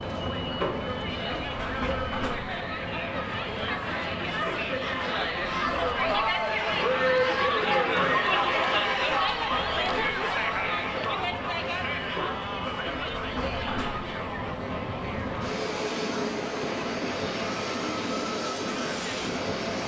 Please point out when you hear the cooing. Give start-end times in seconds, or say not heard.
not heard.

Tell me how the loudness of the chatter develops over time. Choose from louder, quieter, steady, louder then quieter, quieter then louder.
louder then quieter.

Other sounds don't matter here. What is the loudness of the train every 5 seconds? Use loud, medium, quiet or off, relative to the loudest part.
loud, medium, medium, loud.